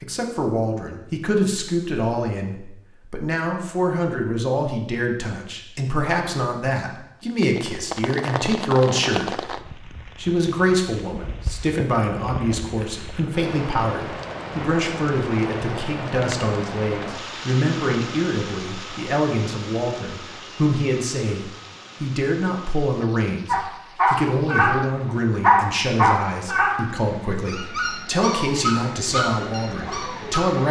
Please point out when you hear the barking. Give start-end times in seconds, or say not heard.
23.4-24.8, 25.4-26.8, 27.4-30.6.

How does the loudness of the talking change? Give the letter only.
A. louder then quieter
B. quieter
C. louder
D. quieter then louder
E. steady
E.